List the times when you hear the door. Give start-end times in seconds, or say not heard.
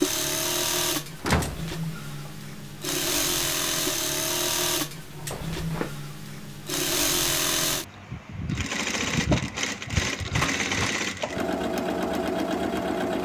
1.2-2.3, 5.3-5.9, 10.3-11.0.